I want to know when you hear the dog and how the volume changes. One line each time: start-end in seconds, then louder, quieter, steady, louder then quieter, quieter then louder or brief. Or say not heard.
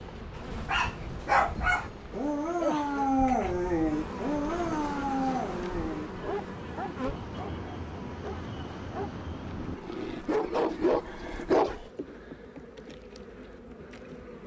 0.3-11.9 quieter then louder.